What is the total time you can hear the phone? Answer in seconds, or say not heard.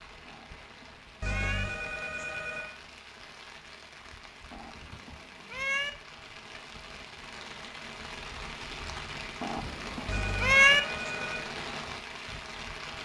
3 s.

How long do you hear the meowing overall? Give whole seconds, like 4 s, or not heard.
4 s.